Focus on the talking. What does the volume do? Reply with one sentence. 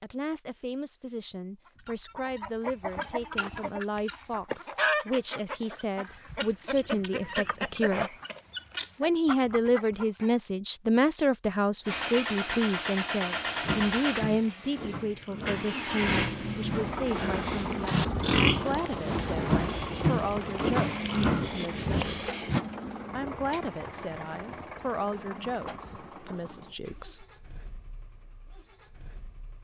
The loudness of the talking goes up, then down.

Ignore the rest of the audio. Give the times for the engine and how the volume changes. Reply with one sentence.
The engine can be heard from 11.8 to 29.5 s, getting quieter.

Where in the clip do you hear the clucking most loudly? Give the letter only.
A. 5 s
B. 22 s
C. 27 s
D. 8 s
A.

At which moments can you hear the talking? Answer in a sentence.
The talking can be heard from 0.0 to 8.2 s, from 9.0 to 22.4 s and from 23.1 to 27.2 s.